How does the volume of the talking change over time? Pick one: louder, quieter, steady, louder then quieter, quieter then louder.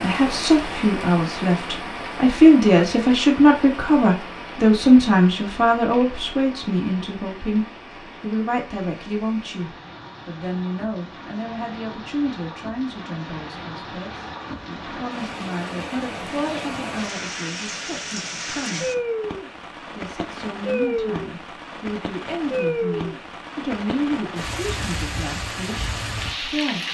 quieter.